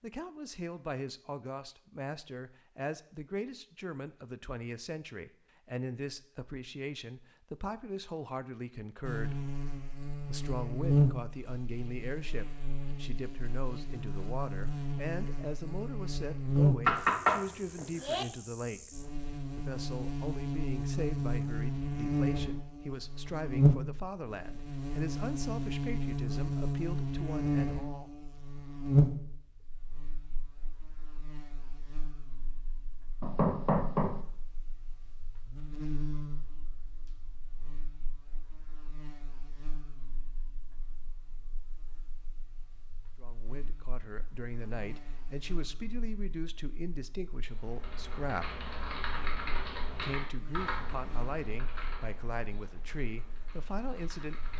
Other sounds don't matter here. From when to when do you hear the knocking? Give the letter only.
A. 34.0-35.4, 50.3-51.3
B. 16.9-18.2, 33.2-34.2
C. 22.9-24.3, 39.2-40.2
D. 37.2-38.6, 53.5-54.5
B.